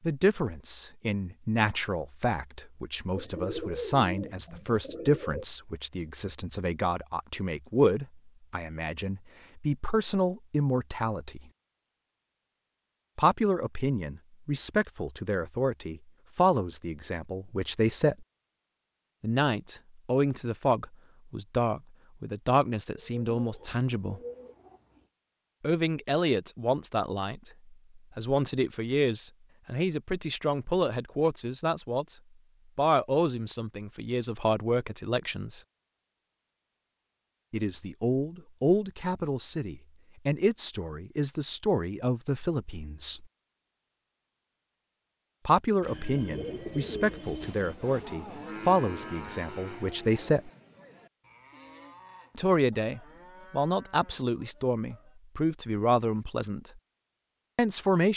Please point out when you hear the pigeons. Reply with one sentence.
The pigeons can be heard from 3.1 to 5.5 s, from 22.9 to 25.1 s and from 45.8 to 47.8 s.